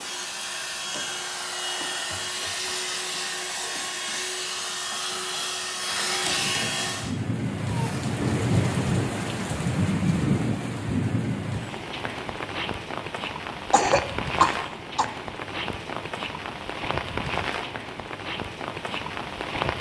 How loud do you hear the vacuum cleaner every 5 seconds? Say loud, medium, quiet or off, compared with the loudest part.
loud, loud, off, off.